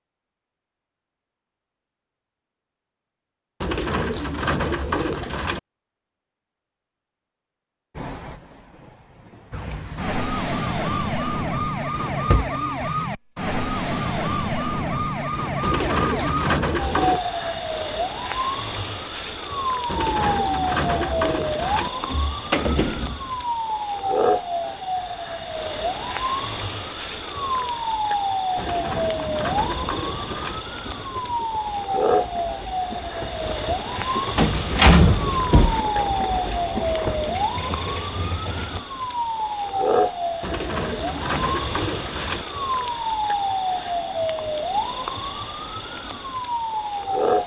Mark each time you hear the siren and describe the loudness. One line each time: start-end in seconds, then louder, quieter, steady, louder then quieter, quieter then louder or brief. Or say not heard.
9.5-47.4 steady.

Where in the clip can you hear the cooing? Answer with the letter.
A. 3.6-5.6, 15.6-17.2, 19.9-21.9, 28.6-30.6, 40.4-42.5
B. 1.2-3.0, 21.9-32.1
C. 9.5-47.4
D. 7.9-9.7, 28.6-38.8
A.